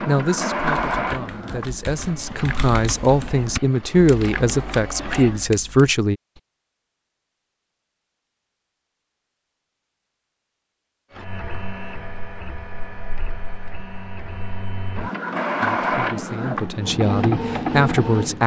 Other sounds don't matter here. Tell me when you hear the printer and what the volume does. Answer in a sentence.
You can hear the printer from 0.0 to 5.5 s, getting quieter then louder; and from 11.1 to 18.4 s, getting louder.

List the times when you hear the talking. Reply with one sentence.
You can hear the talking from 0.1 to 6.2 s and from 15.6 to 18.4 s.